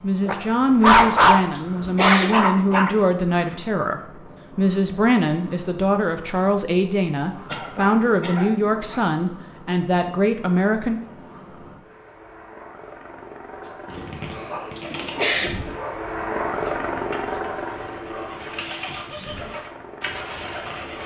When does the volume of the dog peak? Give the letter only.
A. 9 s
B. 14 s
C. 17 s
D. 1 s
D.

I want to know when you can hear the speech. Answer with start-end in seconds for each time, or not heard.
0.0-11.0.